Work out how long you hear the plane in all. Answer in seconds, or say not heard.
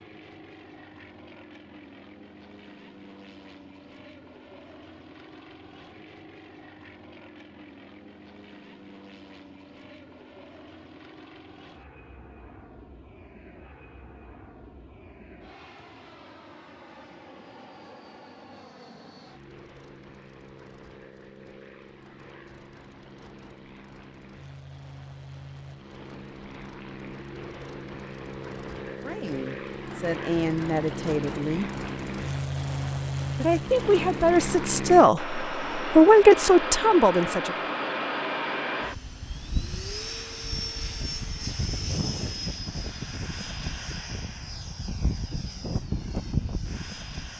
47 s.